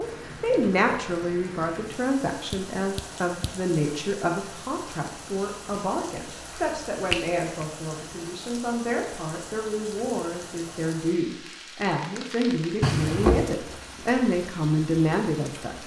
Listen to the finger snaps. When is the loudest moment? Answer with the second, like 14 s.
13 s.